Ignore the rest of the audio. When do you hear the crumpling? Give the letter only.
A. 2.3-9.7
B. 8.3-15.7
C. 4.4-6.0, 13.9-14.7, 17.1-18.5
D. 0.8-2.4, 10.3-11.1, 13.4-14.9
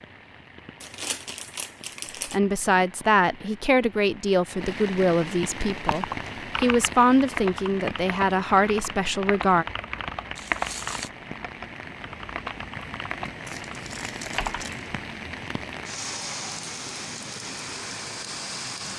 D.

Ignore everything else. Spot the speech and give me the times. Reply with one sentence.
The speech can be heard from 2.3 to 9.7 s.